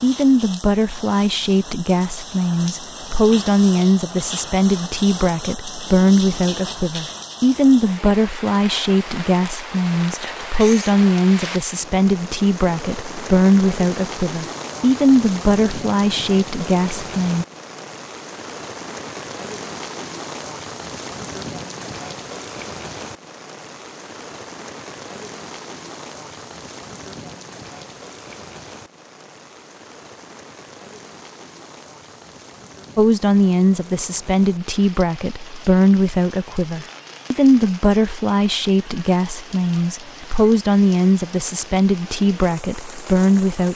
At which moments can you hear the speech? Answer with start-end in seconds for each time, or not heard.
0.0-17.4, 33.0-43.7.